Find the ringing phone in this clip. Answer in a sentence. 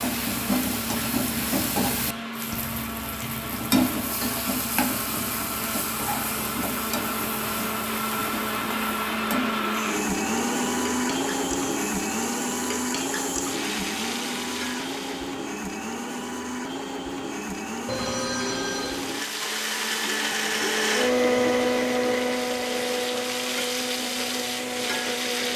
The ringing phone can be heard from 17.9 to 19.0 s.